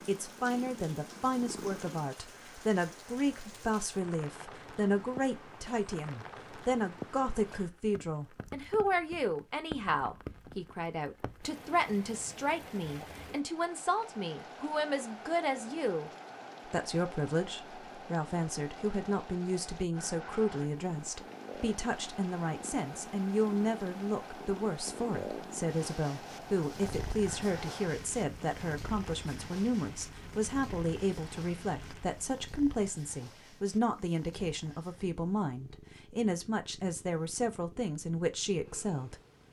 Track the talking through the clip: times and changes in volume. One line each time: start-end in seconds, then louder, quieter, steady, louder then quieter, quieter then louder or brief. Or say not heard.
0.1-39.2 steady.